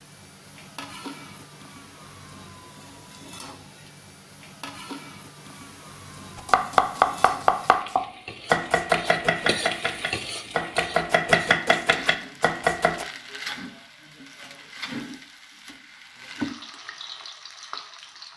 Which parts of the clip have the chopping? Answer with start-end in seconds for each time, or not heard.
6.3-13.1.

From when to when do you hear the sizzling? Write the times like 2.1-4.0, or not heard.
0.0-18.3.